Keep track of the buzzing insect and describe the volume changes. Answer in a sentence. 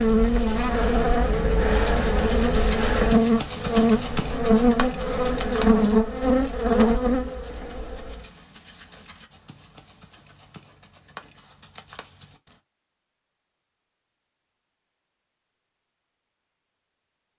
The volume of the buzzing insect stays about the same.